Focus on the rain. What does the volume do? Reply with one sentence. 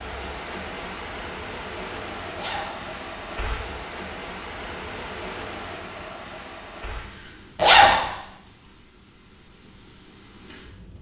The volume of the rain goes down.